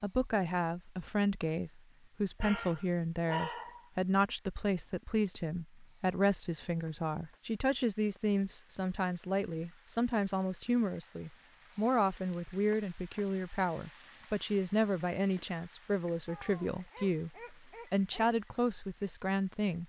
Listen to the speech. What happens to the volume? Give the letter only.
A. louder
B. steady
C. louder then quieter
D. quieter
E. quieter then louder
B.